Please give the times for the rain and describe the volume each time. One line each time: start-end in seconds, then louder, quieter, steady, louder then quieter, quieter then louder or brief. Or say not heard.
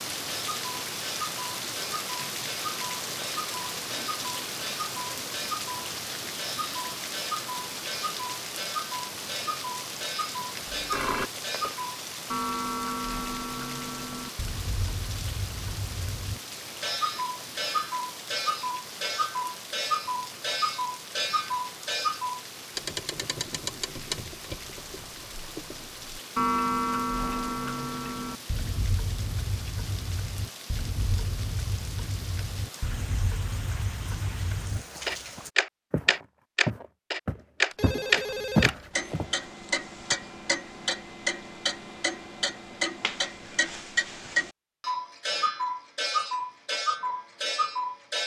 0.0-35.5 quieter.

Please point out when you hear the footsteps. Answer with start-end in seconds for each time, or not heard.
34.6-39.5.